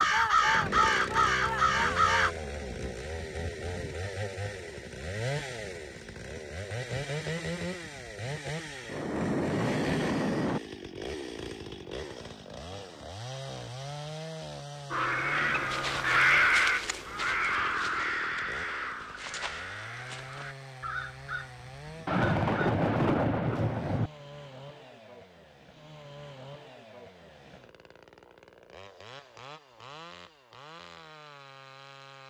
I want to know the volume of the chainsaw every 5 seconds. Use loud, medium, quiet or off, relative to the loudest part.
loud, loud, loud, medium, medium, quiet, quiet.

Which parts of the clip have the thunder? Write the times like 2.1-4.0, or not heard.
8.8-10.6, 22.1-24.1.